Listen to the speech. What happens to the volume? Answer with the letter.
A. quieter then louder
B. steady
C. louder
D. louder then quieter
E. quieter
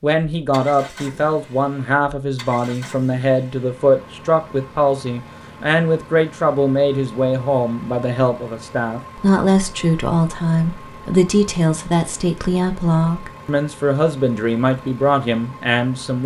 B.